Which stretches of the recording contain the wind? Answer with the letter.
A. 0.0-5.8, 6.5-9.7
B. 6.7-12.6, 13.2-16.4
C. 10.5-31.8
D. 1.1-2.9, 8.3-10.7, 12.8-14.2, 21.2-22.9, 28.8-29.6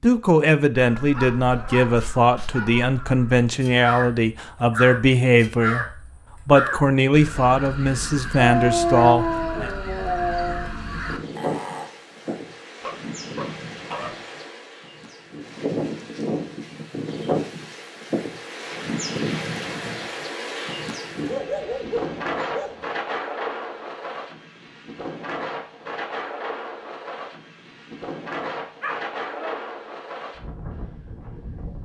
C.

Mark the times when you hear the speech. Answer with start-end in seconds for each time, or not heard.
0.0-5.8, 6.5-9.7.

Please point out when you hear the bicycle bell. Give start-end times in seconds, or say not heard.
not heard.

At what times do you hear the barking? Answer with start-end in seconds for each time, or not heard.
1.1-2.9, 8.3-10.7, 12.8-14.2, 21.2-22.9, 28.8-29.6.